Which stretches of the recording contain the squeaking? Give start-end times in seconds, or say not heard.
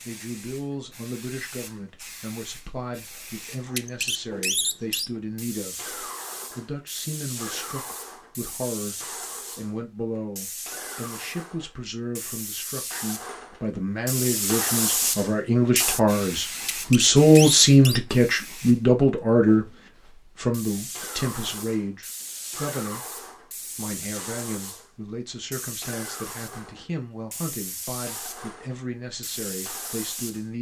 3.6-5.1, 16.6-18.0.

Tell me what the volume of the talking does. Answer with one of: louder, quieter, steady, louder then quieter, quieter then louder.
louder then quieter.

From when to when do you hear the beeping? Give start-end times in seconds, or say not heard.
not heard.